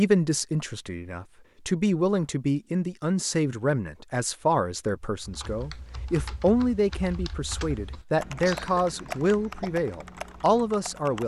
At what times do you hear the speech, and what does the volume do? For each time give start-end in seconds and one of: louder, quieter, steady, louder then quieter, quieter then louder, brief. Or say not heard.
0.0-11.2 steady.